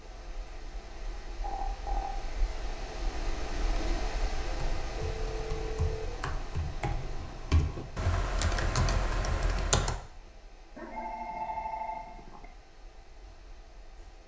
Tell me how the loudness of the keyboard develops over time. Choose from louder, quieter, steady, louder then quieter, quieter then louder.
louder.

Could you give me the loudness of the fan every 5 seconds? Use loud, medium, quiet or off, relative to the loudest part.
loud, loud, quiet.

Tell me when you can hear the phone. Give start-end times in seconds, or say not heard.
1.4-2.0, 5.0-6.1, 10.8-12.4.